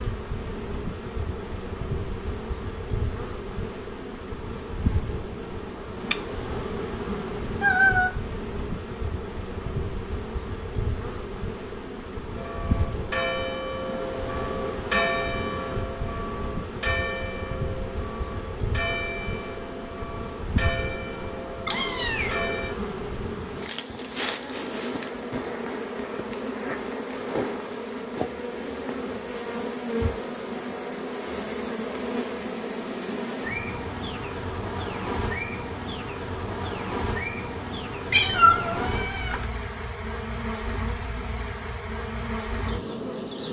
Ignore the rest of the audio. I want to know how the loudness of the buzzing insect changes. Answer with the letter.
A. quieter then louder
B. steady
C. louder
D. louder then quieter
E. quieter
B.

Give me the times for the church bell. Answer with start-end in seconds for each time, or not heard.
12.3-22.8.